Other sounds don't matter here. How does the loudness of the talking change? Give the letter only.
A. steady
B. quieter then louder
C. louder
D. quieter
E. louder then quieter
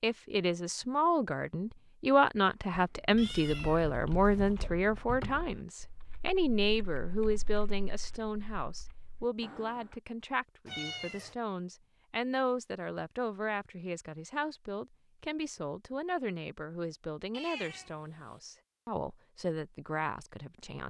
D.